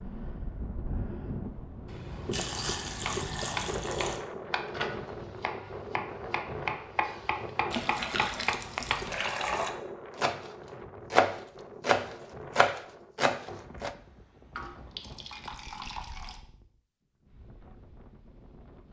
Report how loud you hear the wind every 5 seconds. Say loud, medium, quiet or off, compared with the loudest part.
loud, loud, medium, quiet.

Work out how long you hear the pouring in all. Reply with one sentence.
The pouring can be heard for 6 seconds in total.